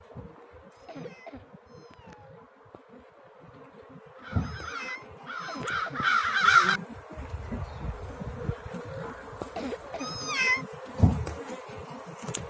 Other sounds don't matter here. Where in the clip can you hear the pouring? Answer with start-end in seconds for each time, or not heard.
not heard.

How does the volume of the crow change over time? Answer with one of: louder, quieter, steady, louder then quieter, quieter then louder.
louder then quieter.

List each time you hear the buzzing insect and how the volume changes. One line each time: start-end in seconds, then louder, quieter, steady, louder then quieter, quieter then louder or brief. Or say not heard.
0.0-12.4 louder.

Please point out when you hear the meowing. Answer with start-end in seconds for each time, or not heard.
0.8-2.3, 4.4-5.7, 9.9-10.7.